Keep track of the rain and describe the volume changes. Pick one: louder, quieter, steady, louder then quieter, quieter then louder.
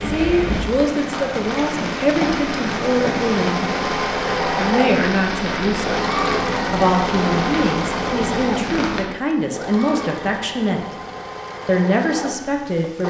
quieter.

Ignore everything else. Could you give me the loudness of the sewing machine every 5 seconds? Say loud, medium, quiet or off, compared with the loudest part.
loud, loud, medium.